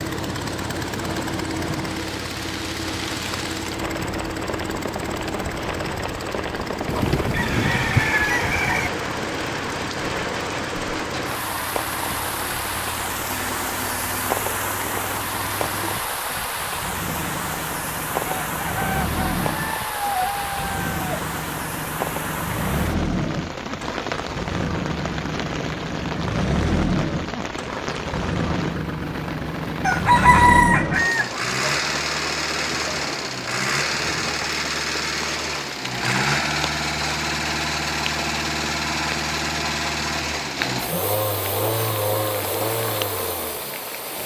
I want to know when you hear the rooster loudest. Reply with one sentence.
The volume of the rooster peaks at 30 seconds.